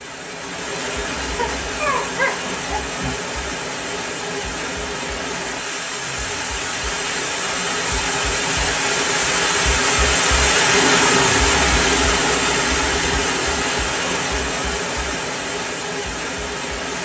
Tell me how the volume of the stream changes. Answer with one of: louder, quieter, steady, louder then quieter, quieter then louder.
louder then quieter.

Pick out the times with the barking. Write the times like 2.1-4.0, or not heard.
1.4-3.1.